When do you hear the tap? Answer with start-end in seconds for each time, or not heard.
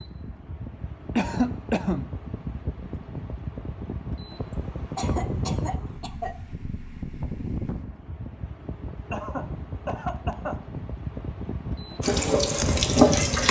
12.0-13.4.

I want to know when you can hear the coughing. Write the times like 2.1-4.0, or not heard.
1.1-2.1, 5.0-6.4, 9.1-10.7.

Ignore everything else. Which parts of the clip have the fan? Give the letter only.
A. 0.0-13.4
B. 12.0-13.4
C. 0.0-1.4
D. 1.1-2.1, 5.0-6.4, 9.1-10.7
A.